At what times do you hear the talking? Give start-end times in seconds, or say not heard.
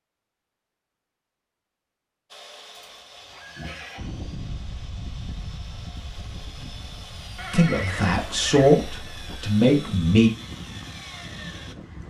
7.5-10.3.